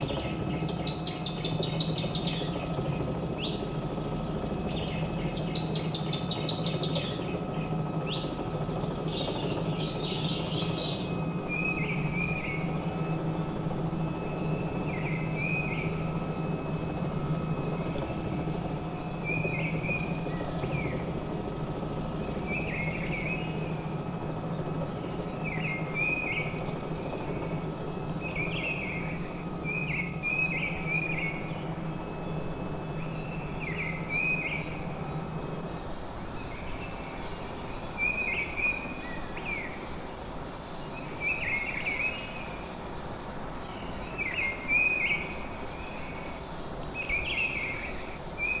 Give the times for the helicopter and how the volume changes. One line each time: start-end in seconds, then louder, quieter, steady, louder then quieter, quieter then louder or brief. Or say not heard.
0.0-48.5 quieter.